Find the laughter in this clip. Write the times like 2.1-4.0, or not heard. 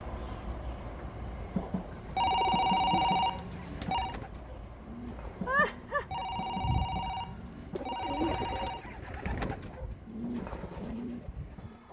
5.5-6.2.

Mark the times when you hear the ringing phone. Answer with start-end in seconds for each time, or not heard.
2.1-4.2, 6.1-8.8.